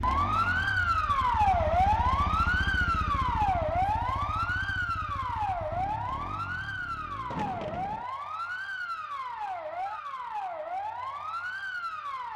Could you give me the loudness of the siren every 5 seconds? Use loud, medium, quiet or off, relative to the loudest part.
loud, medium, medium.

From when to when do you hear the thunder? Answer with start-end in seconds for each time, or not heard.
7.3-8.1.